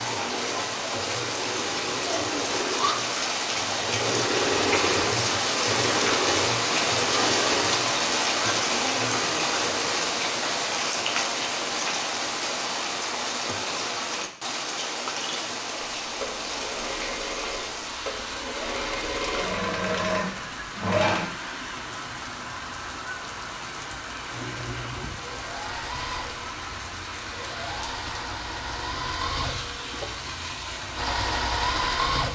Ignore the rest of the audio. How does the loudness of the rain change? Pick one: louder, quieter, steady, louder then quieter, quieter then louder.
quieter.